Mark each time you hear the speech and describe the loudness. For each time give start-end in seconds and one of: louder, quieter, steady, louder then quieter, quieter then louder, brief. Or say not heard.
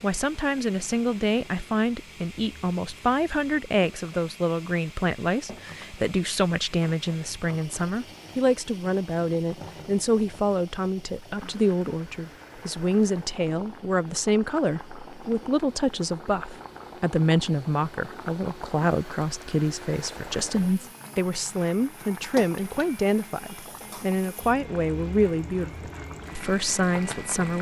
0.0-27.5 steady.